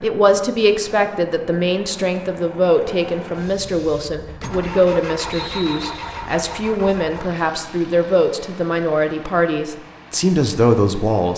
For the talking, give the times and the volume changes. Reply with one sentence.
You can hear the talking from 0.0 to 11.3 s, at a steady volume.